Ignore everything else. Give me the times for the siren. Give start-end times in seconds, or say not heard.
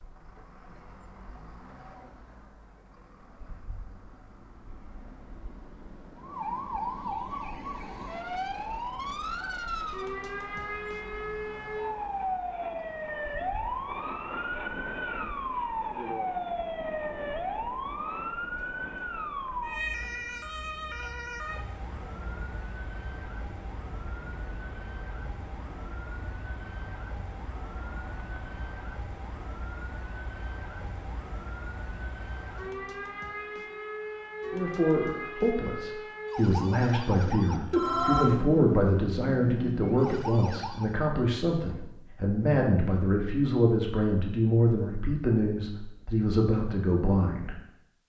6.2-41.0.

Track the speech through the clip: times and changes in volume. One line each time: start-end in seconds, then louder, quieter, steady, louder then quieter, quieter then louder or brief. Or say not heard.
34.5-47.6 steady.